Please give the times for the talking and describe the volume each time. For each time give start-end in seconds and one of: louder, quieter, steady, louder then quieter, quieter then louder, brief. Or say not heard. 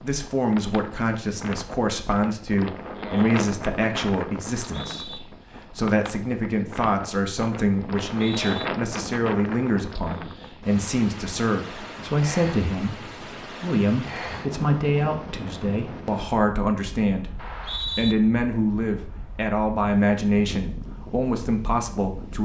0.0-22.4 steady.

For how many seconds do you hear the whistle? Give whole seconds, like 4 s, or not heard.
2 s.